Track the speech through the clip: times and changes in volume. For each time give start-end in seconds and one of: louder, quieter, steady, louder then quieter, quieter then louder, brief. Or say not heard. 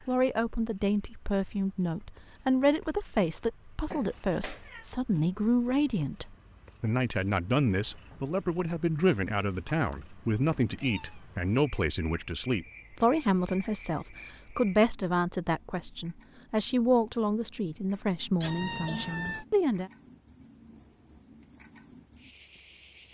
0.1-19.9 steady.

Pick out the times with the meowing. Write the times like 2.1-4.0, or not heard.
3.9-4.8, 9.7-11.2, 18.4-19.4.